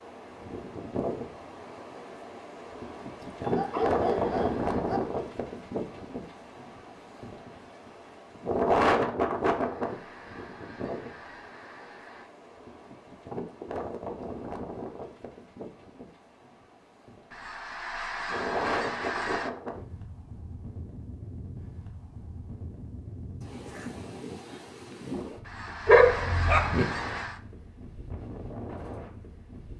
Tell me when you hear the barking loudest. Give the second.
26 s.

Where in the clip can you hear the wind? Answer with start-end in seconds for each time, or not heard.
0.0-29.7.